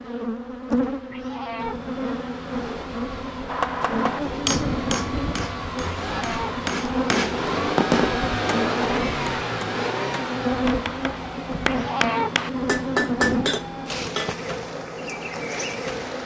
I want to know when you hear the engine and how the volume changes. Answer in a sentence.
You can hear the engine from 1.6 to 16.2 s, getting louder then quieter.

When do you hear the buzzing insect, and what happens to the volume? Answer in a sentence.
You can hear the buzzing insect from 0.0 to 16.2 s, at a steady volume.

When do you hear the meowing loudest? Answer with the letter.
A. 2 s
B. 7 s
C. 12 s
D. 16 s
C.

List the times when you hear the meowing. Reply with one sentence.
You can hear the meowing from 1.1 to 1.9 s, from 6.0 to 6.6 s and from 11.7 to 12.4 s.